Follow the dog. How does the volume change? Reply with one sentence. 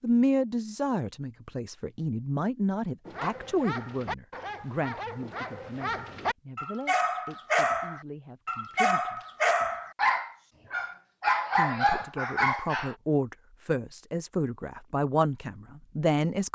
The loudness of the dog goes up.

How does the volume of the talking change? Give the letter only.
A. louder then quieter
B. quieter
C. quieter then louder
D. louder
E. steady
C.